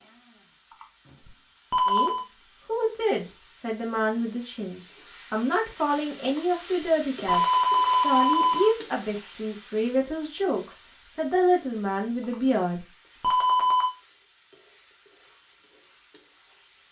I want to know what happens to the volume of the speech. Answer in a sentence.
The loudness of the speech stays about the same.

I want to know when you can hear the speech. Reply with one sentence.
The speech can be heard from 1.9 to 13.2 s.